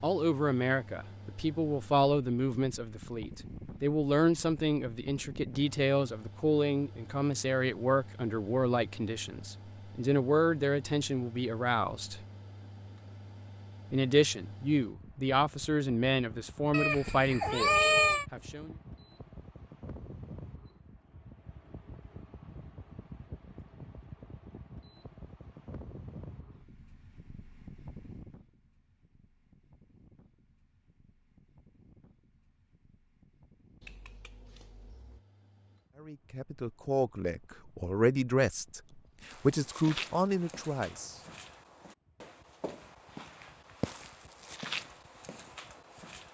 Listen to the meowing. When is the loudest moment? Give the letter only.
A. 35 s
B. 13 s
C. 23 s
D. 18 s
D.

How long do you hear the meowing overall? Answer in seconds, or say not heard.
3 s.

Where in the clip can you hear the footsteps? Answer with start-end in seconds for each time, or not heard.
39.3-46.2.